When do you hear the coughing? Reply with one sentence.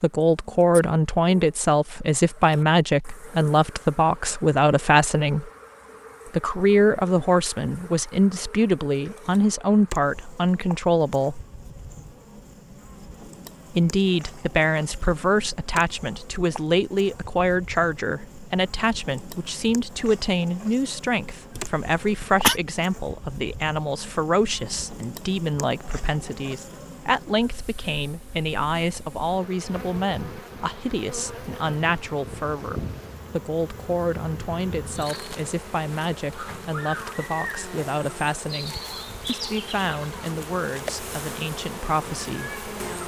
The coughing can be heard from 21.6 to 22.6 s.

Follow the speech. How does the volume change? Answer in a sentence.
The volume of the speech goes down.